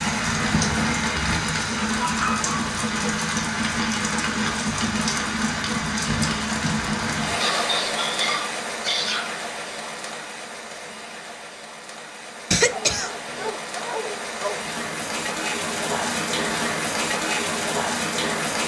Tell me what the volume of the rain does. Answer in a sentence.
The loudness of the rain goes down, then up.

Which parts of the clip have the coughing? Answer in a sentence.
The coughing can be heard from 12.5 to 13.5 s.